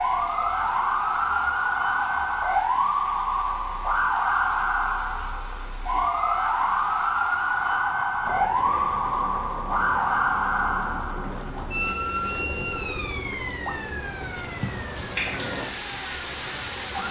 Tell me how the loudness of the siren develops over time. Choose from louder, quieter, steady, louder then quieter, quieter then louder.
quieter.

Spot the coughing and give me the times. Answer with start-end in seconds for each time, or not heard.
not heard.